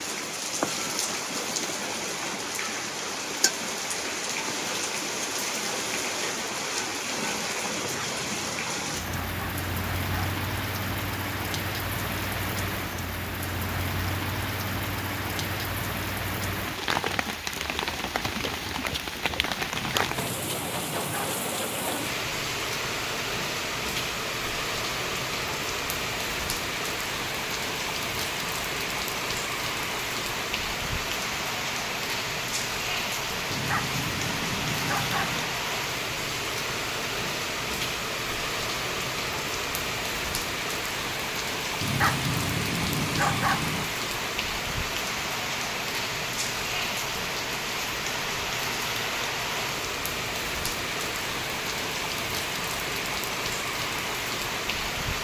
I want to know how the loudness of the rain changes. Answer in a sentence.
The loudness of the rain stays about the same.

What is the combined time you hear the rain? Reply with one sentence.
You can hear the rain for 55 seconds altogether.